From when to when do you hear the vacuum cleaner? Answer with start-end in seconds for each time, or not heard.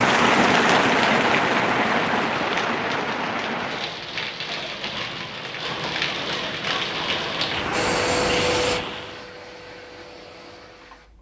7.7-11.1.